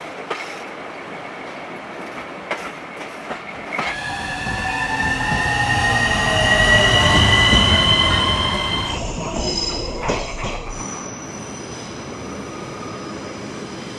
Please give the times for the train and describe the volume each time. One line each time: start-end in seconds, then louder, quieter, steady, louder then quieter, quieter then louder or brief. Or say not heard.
0.0-13.9 louder then quieter.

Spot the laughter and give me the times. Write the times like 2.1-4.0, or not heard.
9.3-11.1.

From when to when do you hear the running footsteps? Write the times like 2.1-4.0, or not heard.
not heard.